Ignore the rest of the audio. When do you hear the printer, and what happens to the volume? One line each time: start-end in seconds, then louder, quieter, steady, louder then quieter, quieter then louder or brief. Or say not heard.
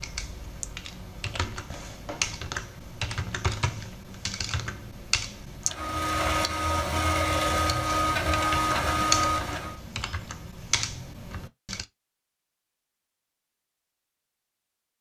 5.7-9.8 steady.